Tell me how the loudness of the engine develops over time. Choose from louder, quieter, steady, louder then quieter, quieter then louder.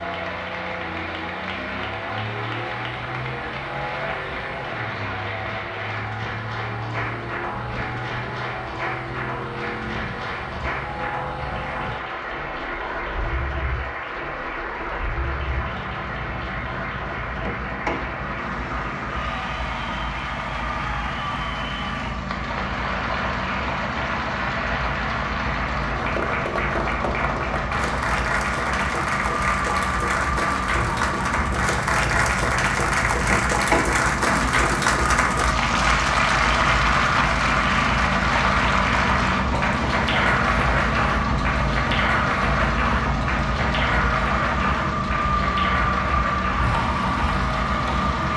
louder.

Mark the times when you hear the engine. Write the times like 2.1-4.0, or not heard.
0.0-48.3.